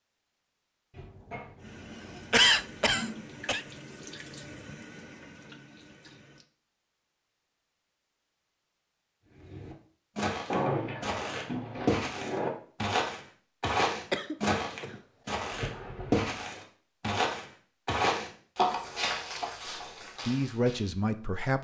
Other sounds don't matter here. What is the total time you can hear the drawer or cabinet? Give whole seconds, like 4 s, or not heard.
5 s.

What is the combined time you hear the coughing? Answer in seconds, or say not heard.
2 s.